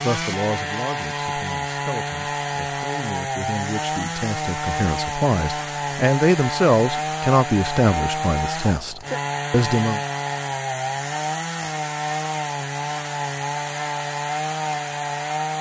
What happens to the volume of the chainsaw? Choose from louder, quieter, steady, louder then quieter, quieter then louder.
steady.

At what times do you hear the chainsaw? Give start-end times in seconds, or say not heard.
0.0-15.5.